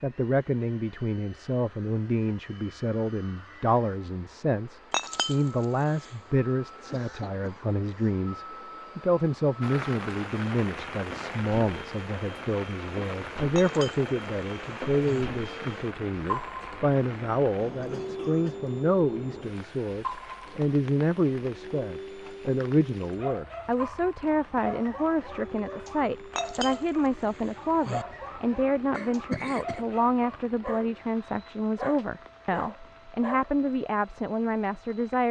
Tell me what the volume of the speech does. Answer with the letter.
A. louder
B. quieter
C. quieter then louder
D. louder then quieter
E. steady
E.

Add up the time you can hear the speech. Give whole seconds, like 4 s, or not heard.
35 s.